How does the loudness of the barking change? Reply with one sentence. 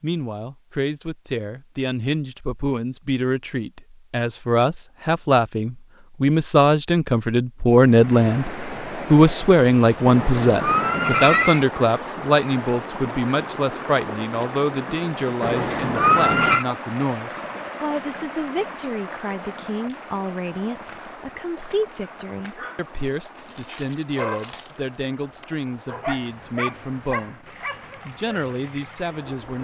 The loudness of the barking goes up, then down.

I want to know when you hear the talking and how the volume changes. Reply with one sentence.
You can hear the talking from 0.0 to 27.4 s, getting louder then quieter; and briefly from 28.1 to 29.5 s.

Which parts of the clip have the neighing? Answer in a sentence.
The neighing can be heard from 10.1 to 11.7 s and from 15.4 to 16.6 s.